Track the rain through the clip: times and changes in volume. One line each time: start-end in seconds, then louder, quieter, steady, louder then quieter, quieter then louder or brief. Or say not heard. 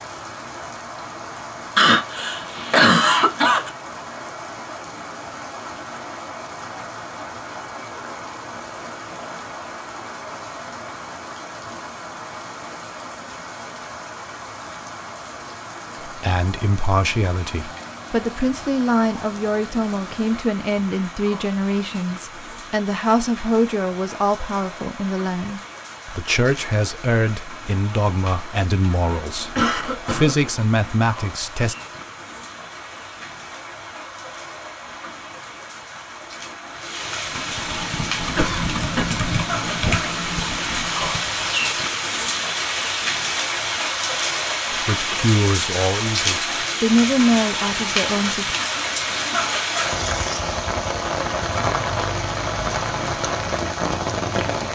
0.0-54.7 louder.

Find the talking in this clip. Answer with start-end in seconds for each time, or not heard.
16.1-31.8, 44.8-48.5.